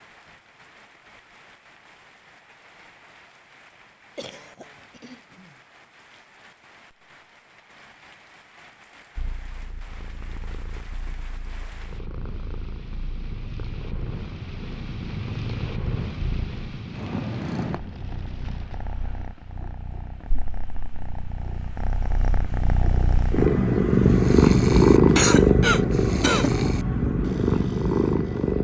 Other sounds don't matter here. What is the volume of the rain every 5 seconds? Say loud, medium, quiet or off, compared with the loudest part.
quiet, quiet, medium, loud, off, off.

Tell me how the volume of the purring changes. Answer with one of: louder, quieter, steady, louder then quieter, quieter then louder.
louder.